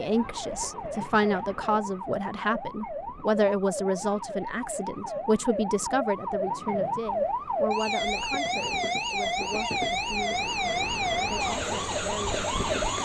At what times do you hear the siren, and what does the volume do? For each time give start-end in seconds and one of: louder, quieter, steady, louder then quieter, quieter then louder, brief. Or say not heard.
0.0-13.0 louder.